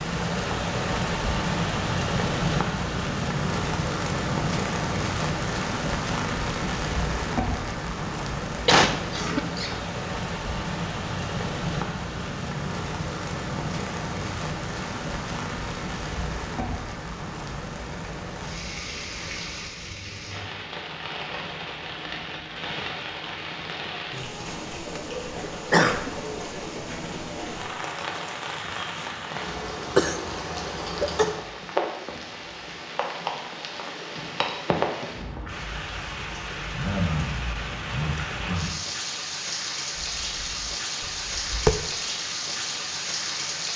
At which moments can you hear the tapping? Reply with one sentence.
The tapping can be heard from 40.0 to 41.8 s.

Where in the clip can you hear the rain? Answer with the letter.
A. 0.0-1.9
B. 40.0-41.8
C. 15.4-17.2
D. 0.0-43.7
D.